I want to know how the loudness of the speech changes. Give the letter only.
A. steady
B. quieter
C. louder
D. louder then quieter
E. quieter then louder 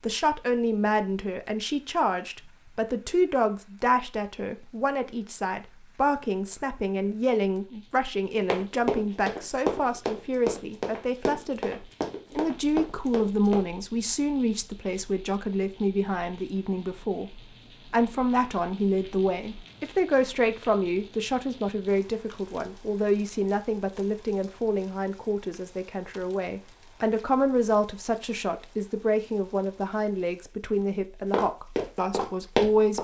A.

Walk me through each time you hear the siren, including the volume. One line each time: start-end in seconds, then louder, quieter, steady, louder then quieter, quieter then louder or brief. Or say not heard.
not heard.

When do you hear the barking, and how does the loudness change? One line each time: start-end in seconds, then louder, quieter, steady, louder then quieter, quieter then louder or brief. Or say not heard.
not heard.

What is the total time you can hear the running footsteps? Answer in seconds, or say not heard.
7 s.